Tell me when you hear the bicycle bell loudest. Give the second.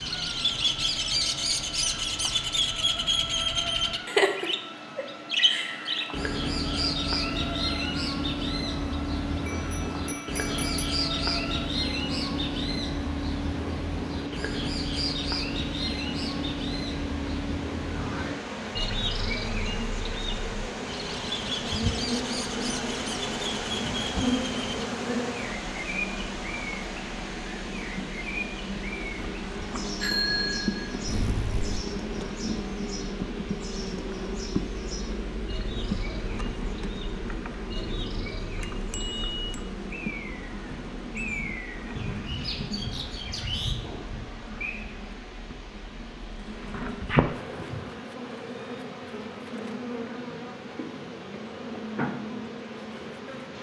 30 s.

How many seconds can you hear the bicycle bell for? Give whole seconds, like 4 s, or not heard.
4 s.